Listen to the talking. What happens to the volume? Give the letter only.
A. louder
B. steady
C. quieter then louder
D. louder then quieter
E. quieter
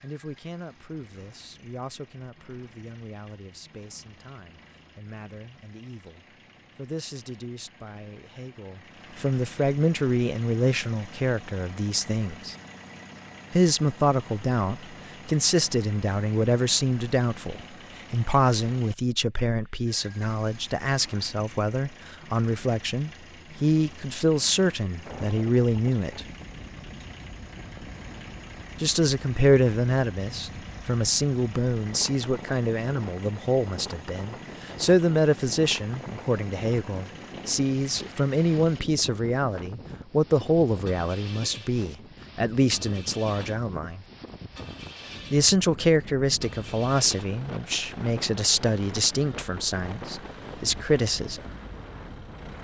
A.